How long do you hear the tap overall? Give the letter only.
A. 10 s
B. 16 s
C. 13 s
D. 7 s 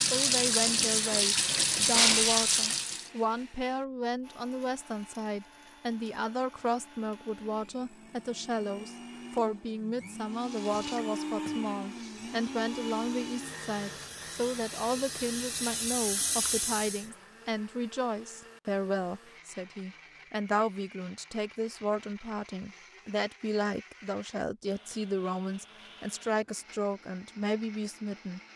A.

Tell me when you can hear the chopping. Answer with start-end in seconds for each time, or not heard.
not heard.